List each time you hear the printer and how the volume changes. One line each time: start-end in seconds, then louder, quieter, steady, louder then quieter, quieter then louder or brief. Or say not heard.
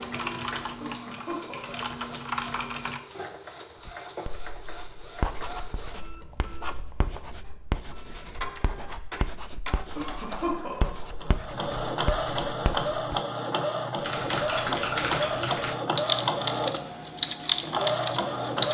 0.0-18.6 louder.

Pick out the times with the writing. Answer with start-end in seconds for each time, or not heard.
3.9-13.2.